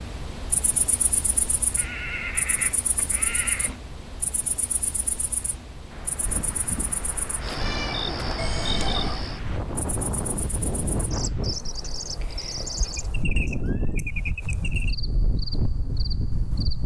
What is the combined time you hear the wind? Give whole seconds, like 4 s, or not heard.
11 s.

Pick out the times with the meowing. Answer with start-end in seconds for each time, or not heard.
7.6-8.4.